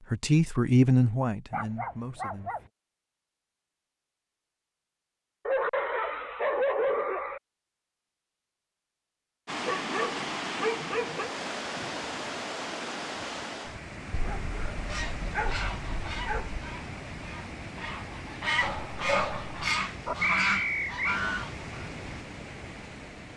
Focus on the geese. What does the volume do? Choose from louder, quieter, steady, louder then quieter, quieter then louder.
quieter then louder.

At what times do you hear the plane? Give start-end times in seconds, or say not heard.
not heard.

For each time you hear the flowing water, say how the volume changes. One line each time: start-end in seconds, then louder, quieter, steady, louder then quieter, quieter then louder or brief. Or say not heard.
9.4-23.3 quieter.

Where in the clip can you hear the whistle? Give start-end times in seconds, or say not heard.
20.2-21.2.